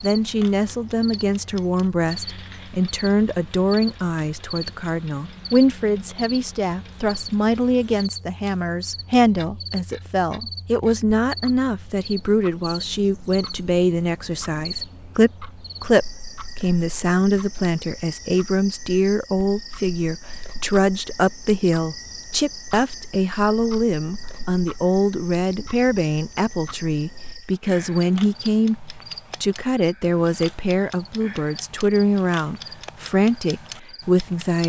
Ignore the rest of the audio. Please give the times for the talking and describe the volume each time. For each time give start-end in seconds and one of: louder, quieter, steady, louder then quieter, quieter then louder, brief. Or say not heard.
0.0-34.6 steady.